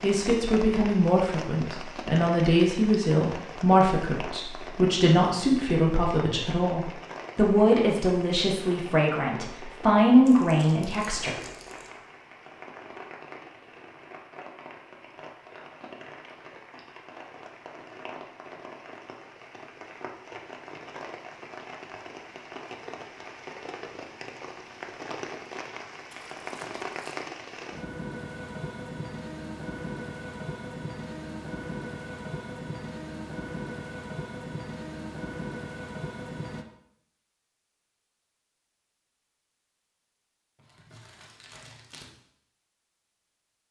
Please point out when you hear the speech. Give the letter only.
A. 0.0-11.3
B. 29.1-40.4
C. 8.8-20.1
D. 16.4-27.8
A.